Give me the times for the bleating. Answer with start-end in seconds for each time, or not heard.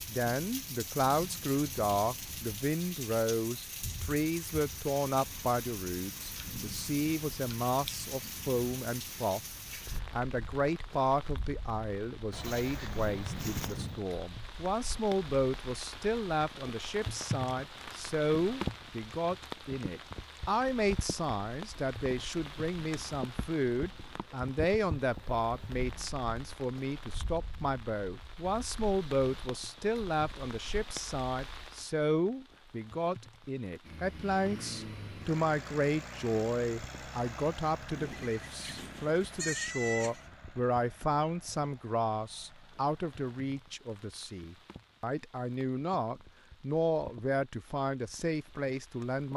12.3-14.1, 38.0-40.2.